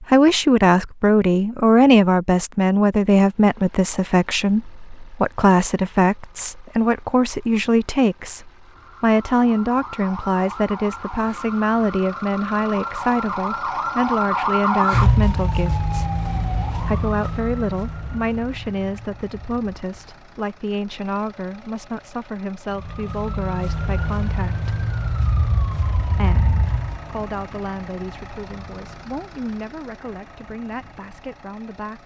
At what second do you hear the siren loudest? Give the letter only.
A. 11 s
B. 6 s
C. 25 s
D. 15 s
D.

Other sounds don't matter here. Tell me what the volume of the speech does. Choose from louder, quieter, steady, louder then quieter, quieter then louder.
quieter.